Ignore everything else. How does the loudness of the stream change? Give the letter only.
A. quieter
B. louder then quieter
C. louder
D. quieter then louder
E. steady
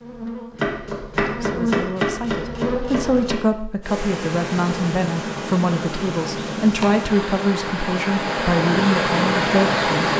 C.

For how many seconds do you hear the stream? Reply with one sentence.
The stream can be heard for 6 seconds in total.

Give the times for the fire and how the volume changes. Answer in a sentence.
You can't hear the fire here.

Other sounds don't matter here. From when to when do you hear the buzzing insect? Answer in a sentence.
The buzzing insect can be heard from 0.0 to 3.4 s.